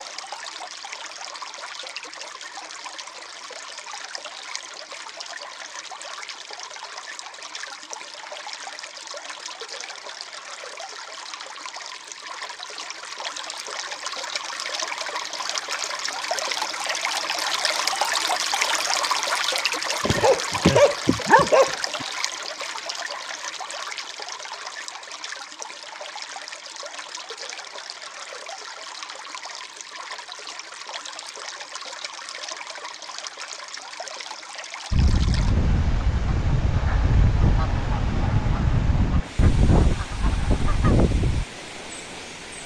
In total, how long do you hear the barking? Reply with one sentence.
You can hear the barking for 2 seconds altogether.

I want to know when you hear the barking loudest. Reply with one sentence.
The volume of the barking peaks at 21 seconds.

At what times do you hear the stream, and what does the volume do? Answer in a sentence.
You can hear the stream from 0.0 to 42.6 s, getting louder then quieter.